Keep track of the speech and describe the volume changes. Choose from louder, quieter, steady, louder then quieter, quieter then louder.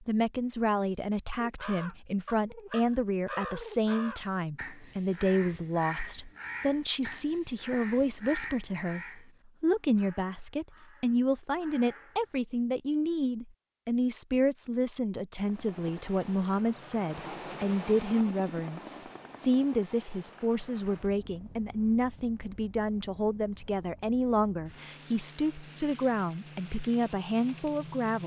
steady.